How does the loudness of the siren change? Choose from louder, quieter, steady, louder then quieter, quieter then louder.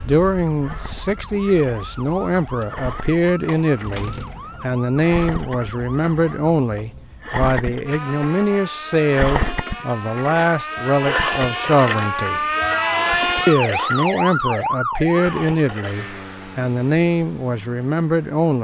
louder.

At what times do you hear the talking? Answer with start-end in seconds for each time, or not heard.
0.1-12.4, 13.4-18.5.